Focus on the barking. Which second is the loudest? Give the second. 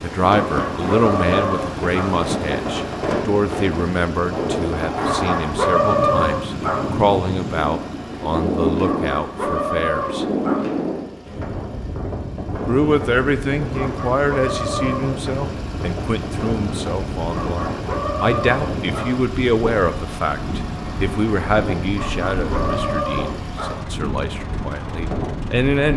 6 s.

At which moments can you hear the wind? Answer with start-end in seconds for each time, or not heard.
0.0-25.9.